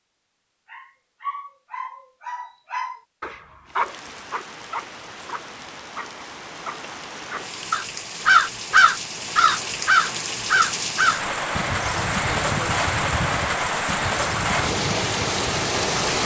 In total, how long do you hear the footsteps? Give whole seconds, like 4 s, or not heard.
not heard.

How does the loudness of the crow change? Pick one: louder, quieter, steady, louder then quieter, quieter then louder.
quieter.